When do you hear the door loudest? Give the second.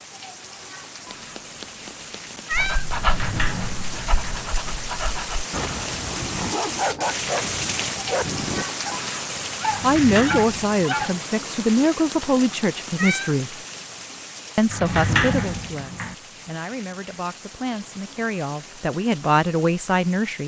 15 s.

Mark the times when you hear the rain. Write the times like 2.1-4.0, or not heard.
0.0-20.4.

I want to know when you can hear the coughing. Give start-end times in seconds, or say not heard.
not heard.